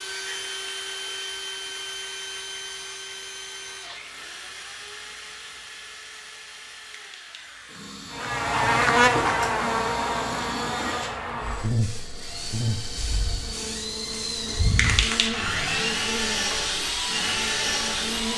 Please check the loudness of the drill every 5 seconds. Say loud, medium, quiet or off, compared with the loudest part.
medium, quiet, medium, loud.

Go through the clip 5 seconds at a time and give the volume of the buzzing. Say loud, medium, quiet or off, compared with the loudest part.
off, loud, medium, quiet.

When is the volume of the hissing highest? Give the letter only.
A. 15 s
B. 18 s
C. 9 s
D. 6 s
A.